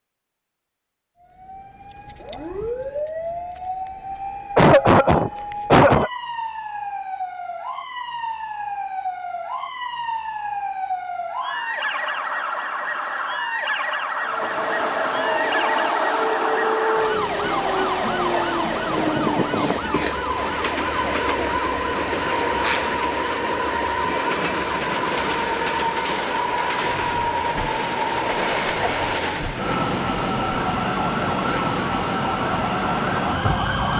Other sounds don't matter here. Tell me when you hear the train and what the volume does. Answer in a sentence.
You can hear the train from 14.2 to 33.9 s, at a steady volume.